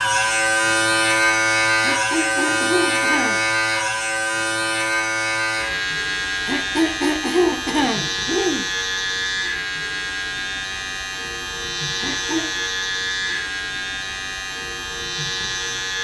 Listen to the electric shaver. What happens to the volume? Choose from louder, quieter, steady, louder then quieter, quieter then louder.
quieter.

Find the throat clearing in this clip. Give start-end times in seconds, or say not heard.
1.8-3.4, 6.5-8.7, 11.9-12.7.